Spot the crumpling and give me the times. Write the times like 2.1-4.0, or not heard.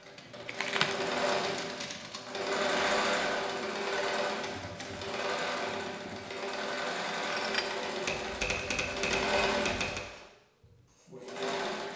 0.5-1.1, 7.2-7.8.